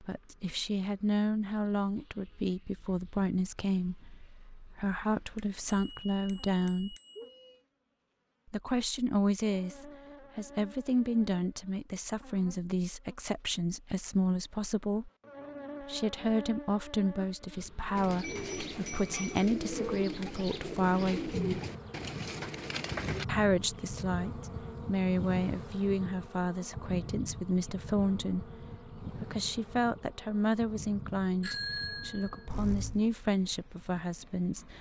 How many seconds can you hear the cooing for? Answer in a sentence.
The cooing can be heard for 5 seconds in total.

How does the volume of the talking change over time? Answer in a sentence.
The loudness of the talking stays about the same.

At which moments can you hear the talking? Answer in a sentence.
The talking can be heard from 0.0 to 7.0 s, from 8.5 to 15.1 s, from 15.8 to 21.6 s and from 23.2 to 34.7 s.